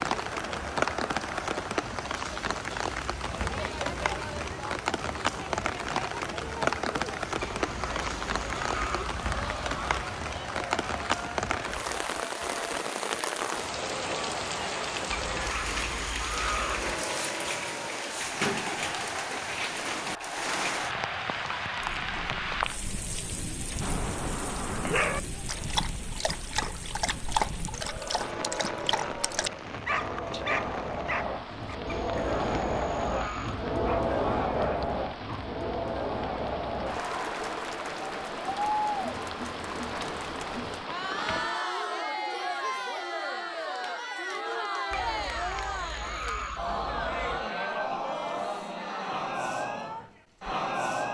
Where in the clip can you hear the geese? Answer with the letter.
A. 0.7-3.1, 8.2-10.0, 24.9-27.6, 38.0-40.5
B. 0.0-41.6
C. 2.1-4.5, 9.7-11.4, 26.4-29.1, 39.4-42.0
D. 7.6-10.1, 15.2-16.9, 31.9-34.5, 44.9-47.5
D.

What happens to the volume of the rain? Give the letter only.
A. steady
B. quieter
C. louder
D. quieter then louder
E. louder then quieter
B.